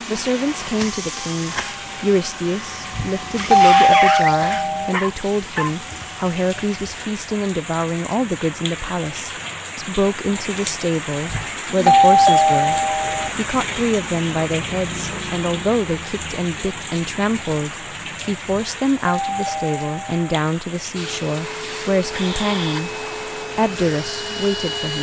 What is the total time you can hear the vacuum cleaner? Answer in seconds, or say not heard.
11 s.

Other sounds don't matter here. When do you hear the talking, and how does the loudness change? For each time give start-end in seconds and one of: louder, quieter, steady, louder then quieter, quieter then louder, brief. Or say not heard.
0.1-24.9 steady.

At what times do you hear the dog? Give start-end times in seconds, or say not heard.
4.5-5.8.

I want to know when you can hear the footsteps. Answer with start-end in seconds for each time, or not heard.
not heard.